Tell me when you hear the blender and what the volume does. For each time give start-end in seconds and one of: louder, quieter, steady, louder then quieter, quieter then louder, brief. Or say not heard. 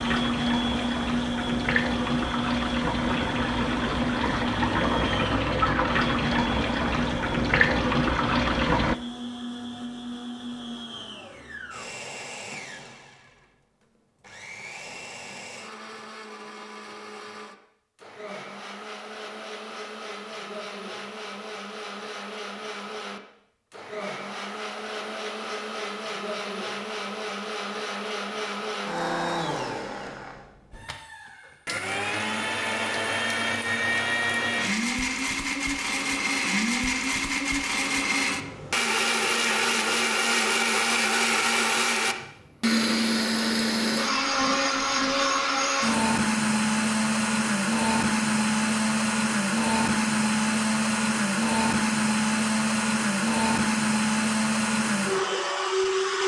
0.0-56.2 quieter then louder.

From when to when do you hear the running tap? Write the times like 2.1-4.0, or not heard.
0.0-8.9.